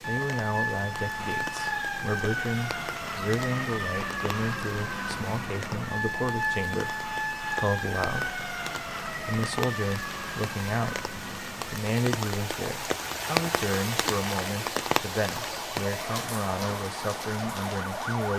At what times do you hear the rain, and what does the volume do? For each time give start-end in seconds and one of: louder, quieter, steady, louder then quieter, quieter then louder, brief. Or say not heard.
0.0-18.3 louder.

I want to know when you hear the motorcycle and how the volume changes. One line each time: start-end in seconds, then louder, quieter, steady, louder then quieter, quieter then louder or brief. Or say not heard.
not heard.